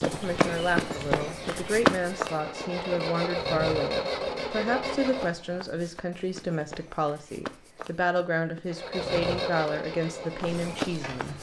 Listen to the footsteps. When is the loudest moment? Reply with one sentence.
The volume of the footsteps peaks at 2 seconds.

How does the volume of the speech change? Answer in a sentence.
The loudness of the speech stays about the same.